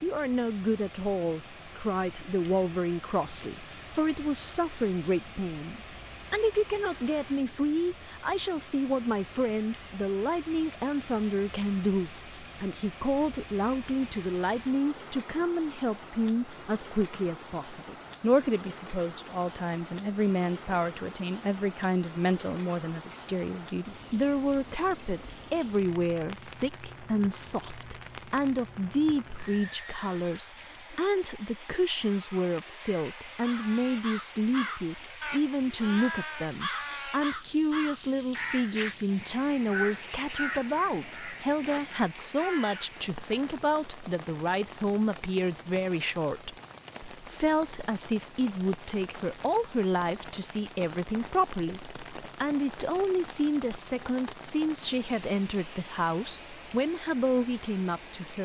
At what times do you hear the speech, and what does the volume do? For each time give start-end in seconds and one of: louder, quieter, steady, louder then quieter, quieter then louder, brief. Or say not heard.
0.0-58.3 steady.